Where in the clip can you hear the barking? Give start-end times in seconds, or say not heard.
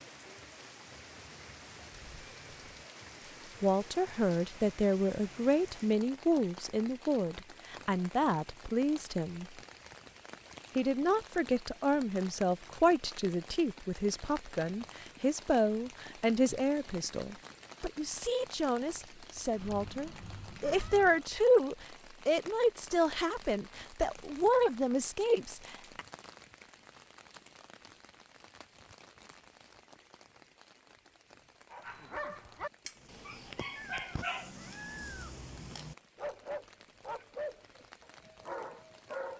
31.7-39.3.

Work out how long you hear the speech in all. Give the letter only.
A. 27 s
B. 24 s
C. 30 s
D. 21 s
D.